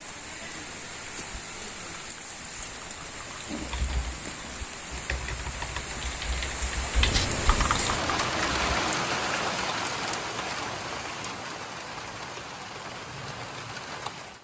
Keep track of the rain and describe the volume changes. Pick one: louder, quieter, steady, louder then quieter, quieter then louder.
louder then quieter.